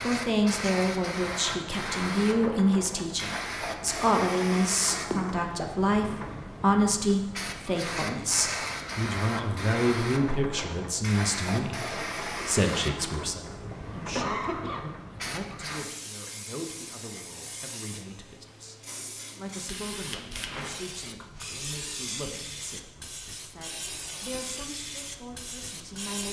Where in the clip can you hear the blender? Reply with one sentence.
The blender can't be heard in this clip.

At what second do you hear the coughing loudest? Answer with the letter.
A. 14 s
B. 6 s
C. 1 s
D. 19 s
A.